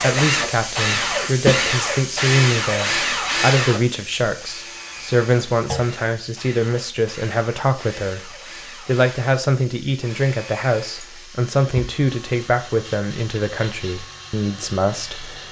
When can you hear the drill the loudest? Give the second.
3 s.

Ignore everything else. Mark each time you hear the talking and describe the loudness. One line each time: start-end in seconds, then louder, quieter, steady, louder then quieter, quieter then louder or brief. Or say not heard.
0.0-15.4 steady.